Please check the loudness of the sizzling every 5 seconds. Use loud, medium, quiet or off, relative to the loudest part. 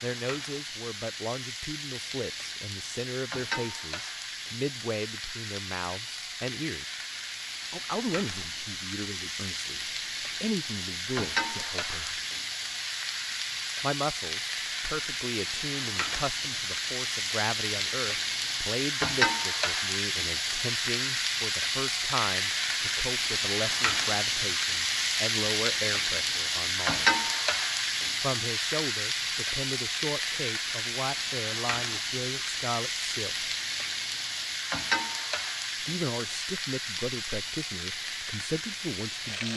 medium, medium, medium, loud, loud, loud, loud, medium.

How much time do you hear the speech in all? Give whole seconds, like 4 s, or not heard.
34 s.